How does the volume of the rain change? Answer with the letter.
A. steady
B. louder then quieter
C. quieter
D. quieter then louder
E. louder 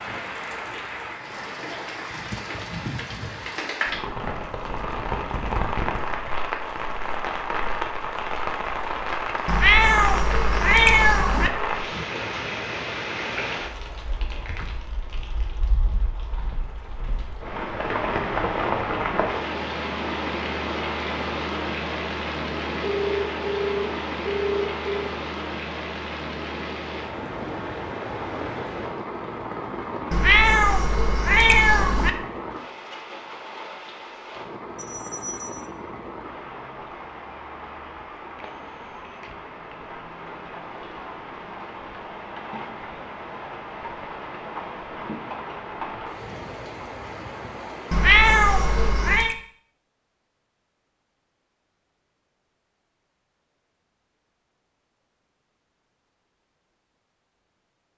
C.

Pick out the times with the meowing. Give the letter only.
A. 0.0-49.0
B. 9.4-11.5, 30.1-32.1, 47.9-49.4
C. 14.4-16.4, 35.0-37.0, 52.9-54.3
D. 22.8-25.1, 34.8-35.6
B.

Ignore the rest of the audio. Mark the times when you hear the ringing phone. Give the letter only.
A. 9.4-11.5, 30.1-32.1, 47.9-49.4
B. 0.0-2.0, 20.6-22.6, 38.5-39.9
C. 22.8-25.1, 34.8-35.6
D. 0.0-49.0
C.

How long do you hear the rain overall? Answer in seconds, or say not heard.
49 s.